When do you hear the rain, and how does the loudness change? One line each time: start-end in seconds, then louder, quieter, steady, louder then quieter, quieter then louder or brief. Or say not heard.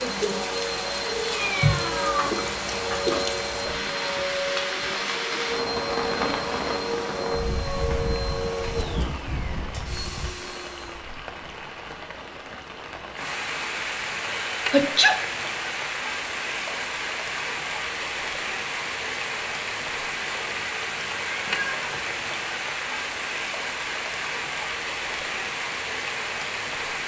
0.0-27.0 steady.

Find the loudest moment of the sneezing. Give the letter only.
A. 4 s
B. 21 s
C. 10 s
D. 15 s
D.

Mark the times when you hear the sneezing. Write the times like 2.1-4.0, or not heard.
1.6-3.8, 14.5-15.2.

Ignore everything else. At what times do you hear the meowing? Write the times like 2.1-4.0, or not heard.
1.2-2.3, 21.2-22.1.